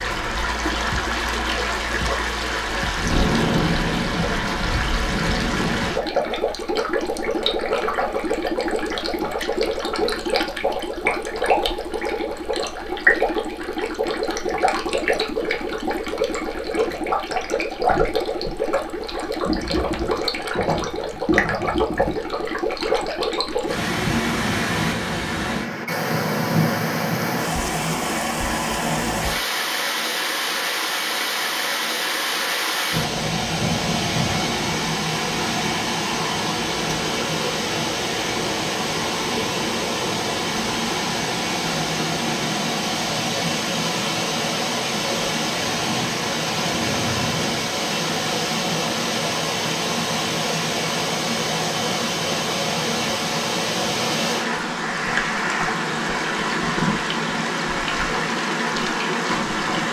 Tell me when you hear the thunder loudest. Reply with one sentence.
The volume of the thunder peaks at 3 seconds.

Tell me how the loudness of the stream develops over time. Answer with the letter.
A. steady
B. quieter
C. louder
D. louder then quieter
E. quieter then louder
A.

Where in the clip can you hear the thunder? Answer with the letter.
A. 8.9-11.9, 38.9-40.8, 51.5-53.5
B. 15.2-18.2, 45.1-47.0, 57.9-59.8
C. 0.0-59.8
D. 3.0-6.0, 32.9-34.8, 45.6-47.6
D.